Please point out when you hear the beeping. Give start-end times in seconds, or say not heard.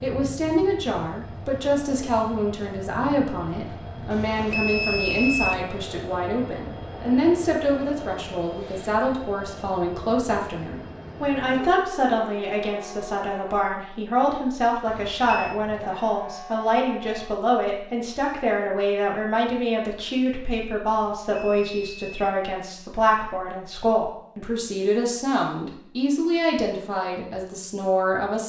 4.1-5.6, 14.8-15.6, 20.9-22.4.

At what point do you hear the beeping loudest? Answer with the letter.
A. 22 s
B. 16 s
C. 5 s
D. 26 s
C.